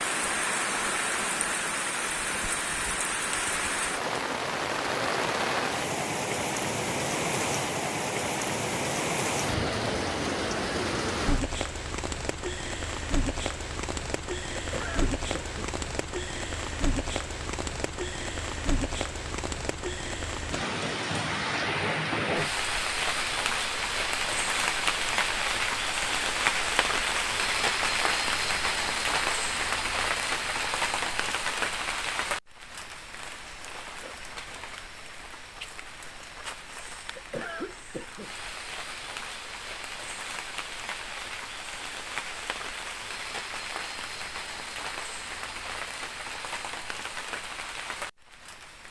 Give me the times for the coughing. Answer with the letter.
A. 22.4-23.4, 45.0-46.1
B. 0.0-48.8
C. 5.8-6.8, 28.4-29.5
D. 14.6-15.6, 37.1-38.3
D.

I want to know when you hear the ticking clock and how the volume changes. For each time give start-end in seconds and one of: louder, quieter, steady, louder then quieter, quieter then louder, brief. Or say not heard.
not heard.